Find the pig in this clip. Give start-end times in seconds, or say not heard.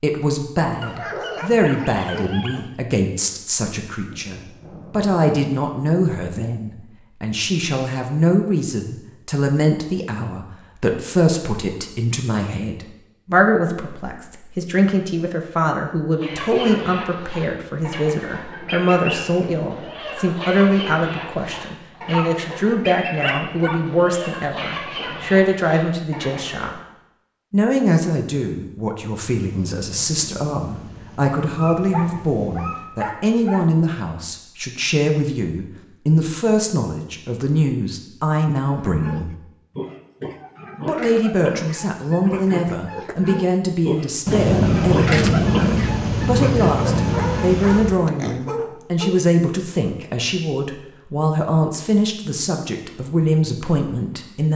38.6-48.5.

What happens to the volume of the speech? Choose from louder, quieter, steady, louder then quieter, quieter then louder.
steady.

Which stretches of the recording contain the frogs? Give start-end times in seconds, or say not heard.
not heard.